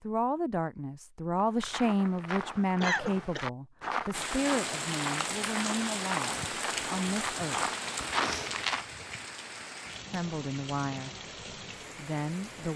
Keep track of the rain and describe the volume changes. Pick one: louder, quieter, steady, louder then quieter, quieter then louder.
quieter.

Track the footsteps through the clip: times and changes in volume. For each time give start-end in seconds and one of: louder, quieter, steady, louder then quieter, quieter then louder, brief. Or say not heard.
1.4-8.8 louder.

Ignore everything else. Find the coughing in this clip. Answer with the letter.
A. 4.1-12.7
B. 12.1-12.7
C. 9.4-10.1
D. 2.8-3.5
D.